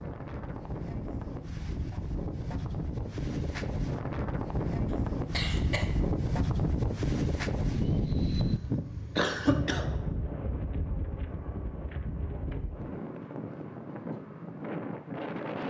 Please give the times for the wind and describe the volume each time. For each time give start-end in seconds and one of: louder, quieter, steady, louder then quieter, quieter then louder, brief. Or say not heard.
0.0-15.6 louder then quieter.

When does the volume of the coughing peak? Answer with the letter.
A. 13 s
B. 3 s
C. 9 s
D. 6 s
C.